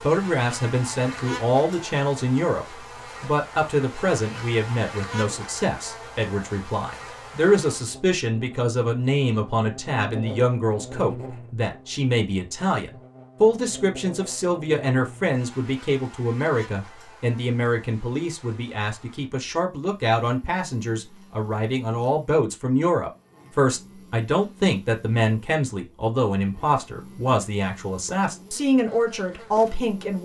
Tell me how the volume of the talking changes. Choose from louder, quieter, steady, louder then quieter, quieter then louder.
steady.